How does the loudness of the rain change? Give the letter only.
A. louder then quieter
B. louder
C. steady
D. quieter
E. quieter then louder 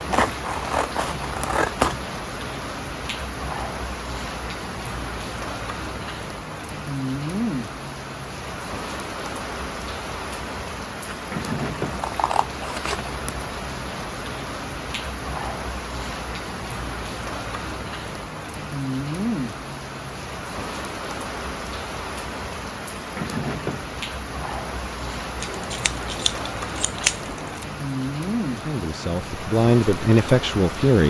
C.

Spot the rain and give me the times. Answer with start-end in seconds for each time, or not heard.
0.0-31.0.